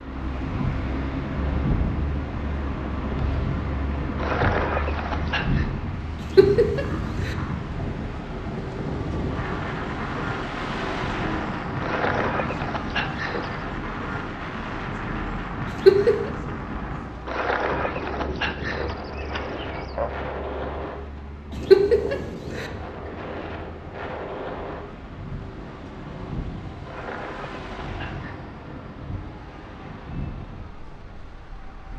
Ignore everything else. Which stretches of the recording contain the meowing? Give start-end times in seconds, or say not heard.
6.2-7.3, 15.7-16.3, 21.5-22.6.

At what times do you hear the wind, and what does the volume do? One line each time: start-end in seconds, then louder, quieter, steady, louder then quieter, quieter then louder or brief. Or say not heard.
0.0-31.9 quieter.